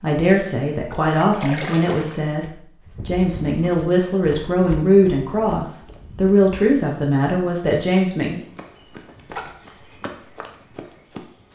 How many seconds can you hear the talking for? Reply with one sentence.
You can hear the talking for 8 seconds altogether.